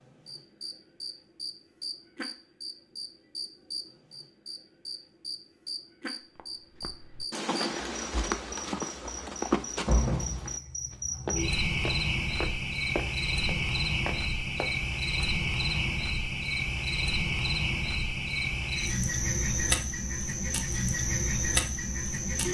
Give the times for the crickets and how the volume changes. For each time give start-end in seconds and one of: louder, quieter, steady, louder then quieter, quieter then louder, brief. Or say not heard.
0.0-22.5 louder.